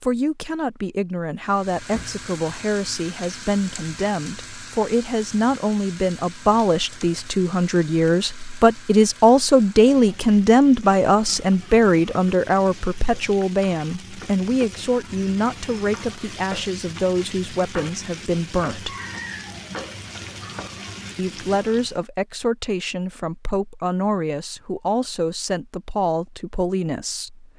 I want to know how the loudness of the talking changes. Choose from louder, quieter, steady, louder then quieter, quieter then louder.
louder then quieter.